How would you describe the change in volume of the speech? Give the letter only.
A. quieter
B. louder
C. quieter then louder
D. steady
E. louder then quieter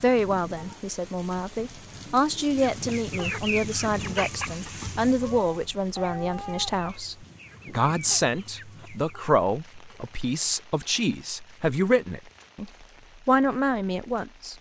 D.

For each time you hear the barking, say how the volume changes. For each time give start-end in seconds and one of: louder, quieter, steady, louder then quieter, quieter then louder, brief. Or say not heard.
not heard.